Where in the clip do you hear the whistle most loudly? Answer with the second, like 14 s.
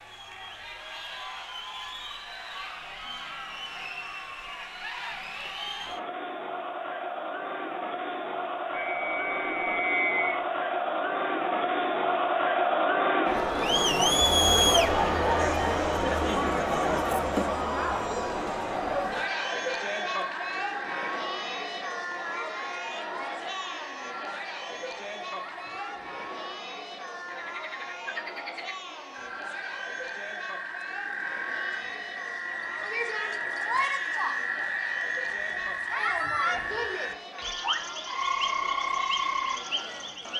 10 s.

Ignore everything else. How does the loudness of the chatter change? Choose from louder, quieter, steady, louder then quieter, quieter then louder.
louder then quieter.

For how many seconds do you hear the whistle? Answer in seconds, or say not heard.
2 s.